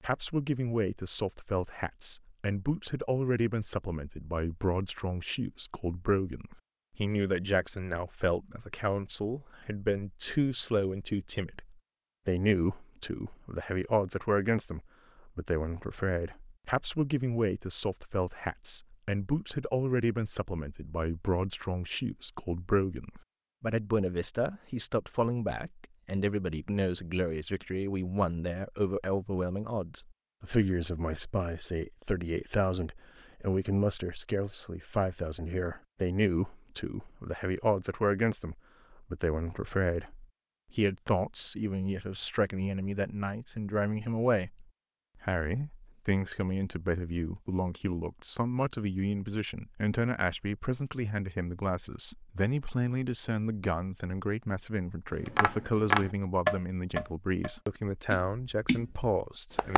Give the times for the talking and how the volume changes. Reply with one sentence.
The talking can be heard from 0.0 to 59.7 s, at a steady volume.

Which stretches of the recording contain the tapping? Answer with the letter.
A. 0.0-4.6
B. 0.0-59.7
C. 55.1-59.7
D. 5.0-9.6
C.